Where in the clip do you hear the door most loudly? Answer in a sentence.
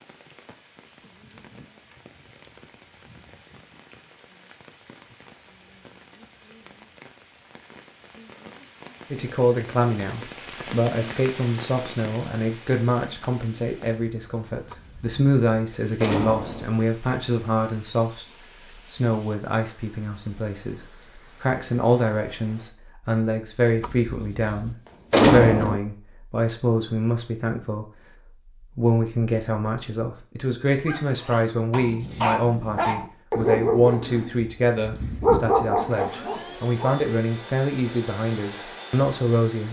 The volume of the door peaks at 25 seconds.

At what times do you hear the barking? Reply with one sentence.
The barking can be heard from 30.9 to 36.9 s.